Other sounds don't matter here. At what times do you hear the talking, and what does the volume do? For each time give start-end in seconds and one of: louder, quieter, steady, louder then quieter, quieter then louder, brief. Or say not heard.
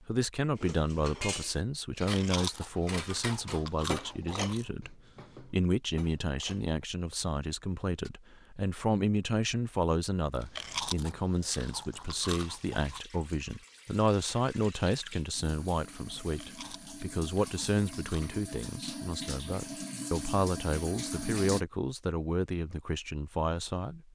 0.1-24.0 steady.